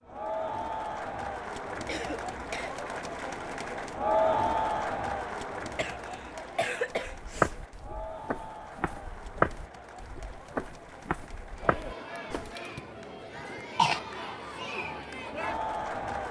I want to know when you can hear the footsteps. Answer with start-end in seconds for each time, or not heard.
7.0-12.6.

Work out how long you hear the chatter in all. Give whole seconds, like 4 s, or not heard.
16 s.